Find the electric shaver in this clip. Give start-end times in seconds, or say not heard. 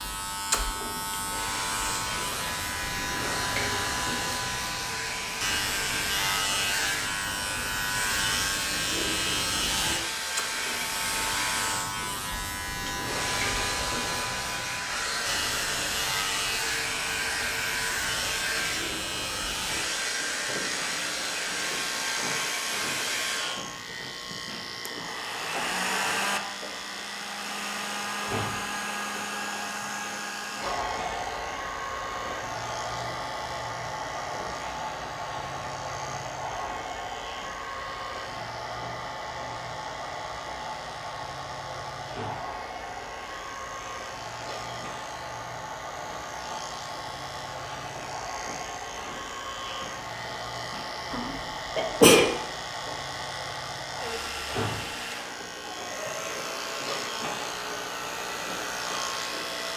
0.0-59.7.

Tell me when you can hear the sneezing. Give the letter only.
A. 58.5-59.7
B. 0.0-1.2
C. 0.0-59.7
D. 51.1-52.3
D.